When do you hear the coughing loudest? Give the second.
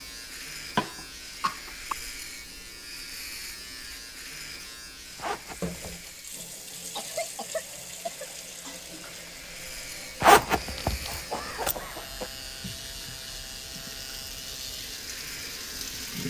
1 s.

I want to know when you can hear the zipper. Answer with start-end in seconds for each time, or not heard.
5.2-6.2, 10.2-11.8.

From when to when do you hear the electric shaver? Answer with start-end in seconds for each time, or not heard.
0.0-16.2.